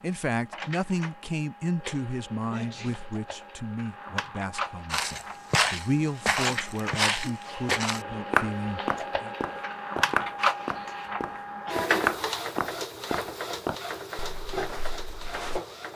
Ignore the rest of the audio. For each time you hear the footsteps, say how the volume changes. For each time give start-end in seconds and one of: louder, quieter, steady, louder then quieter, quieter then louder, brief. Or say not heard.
4.9-15.6 quieter.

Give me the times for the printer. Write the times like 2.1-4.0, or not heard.
0.0-15.9.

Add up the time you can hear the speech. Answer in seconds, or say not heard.
9 s.